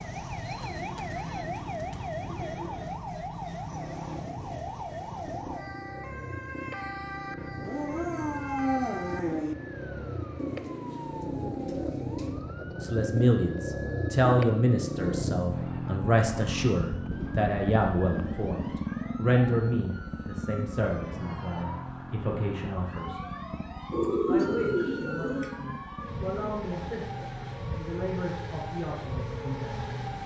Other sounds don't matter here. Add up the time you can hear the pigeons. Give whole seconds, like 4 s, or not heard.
8 s.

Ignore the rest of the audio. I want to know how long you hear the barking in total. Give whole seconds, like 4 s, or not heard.
2 s.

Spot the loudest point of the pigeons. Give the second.
24 s.